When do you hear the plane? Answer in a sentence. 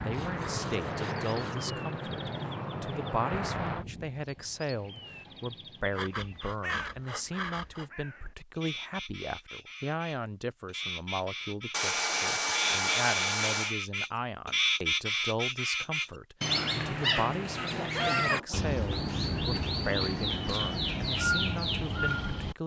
The plane can be heard from 0.0 to 3.9 s.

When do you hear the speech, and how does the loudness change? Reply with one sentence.
The speech can be heard from 0.0 to 22.6 s, at a steady volume.